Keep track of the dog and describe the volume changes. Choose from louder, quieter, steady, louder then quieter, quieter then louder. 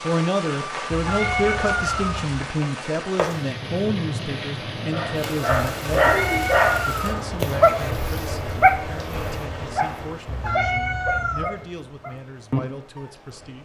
quieter.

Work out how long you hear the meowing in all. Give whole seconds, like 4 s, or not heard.
4 s.